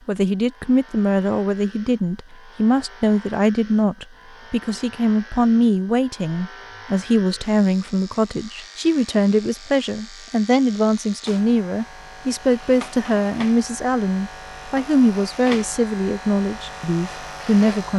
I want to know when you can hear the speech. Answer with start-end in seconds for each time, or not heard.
0.1-17.9.